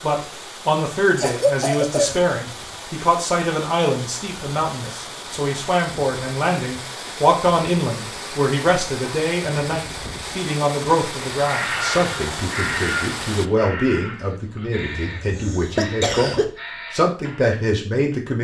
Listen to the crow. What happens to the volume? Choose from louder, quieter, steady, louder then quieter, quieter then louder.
quieter.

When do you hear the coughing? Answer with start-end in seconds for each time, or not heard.
1.1-2.4, 14.8-16.5.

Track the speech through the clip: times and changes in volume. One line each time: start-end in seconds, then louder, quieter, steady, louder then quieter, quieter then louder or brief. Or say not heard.
0.0-18.3 steady.